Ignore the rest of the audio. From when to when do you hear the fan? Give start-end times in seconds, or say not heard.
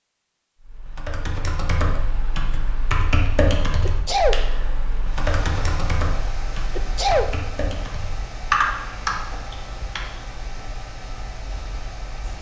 5.1-12.3.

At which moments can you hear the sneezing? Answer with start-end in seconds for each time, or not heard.
3.9-4.3, 6.8-7.2.